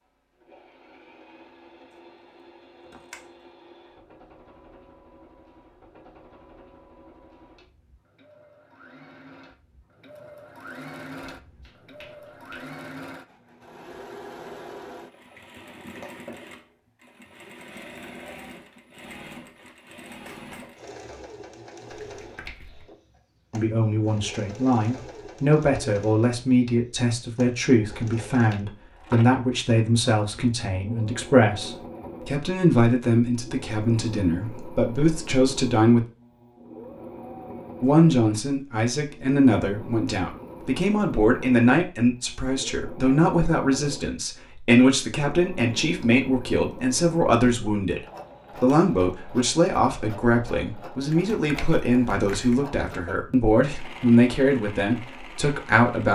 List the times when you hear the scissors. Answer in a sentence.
You can hear the scissors from 2.8 to 3.3 s.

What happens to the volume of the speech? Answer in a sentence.
The volume of the speech stays about the same.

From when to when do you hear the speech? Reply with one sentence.
The speech can be heard from 23.5 to 36.0 s and from 37.8 to 56.1 s.